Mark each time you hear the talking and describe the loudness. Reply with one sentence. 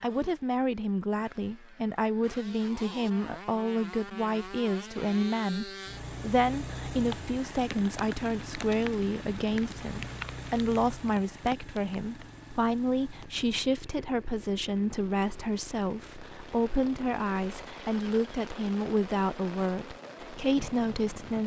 You can hear the talking from 0.0 to 21.4 s, at a steady volume.